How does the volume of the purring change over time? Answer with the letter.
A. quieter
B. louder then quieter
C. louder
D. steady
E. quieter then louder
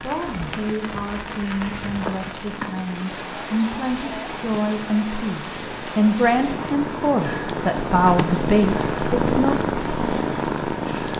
C.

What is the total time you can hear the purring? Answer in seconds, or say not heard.
11 s.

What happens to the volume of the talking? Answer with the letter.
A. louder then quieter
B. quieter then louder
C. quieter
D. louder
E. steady
D.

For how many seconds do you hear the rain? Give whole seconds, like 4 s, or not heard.
11 s.